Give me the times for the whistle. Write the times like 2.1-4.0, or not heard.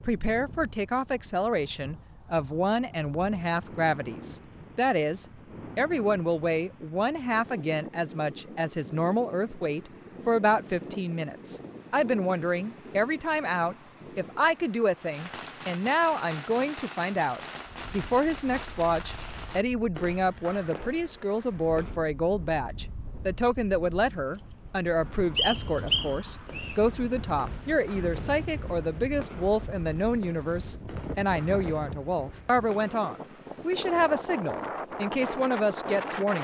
25.4-26.8.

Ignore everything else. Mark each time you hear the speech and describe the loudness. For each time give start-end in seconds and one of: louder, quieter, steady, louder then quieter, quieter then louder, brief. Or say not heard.
0.0-36.4 steady.